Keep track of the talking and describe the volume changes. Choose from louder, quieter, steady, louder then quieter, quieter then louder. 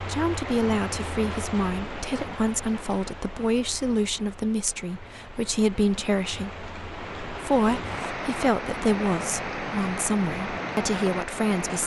steady.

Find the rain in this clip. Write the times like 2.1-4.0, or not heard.
0.0-11.8.